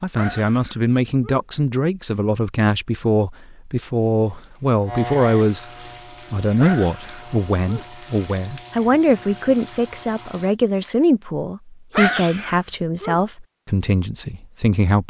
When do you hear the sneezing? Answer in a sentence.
The sneezing can be heard from 0.1 to 1.4 s, from 6.6 to 7.8 s and from 11.9 to 13.2 s.